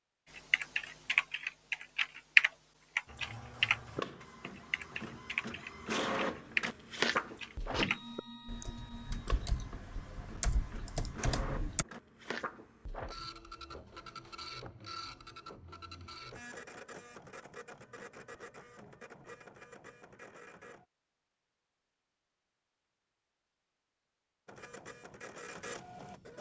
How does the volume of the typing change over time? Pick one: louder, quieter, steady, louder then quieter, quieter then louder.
quieter.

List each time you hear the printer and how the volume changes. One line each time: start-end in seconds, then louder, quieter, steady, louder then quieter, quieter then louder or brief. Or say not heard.
3.0-20.9 quieter
24.4-26.3 brief.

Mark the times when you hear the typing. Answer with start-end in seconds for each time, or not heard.
0.3-11.8.